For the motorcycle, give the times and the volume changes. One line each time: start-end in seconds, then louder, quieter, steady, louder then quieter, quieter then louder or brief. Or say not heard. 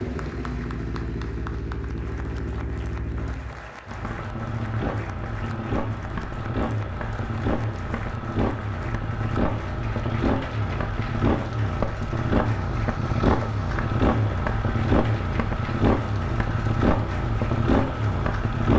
0.0-18.7 louder.